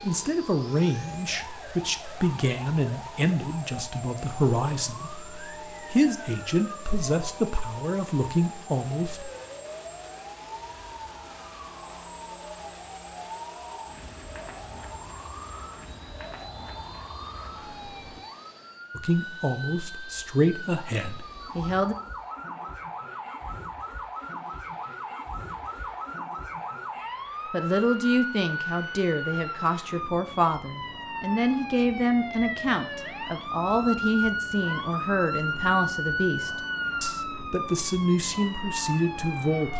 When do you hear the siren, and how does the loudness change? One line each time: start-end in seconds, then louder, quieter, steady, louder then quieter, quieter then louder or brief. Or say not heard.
0.0-39.7 louder.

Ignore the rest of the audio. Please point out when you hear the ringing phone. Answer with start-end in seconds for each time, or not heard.
not heard.